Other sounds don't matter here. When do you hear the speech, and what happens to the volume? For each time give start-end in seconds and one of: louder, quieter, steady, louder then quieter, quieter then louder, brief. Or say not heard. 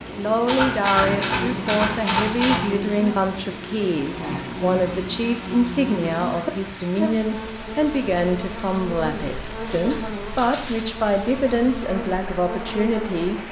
0.1-13.4 steady.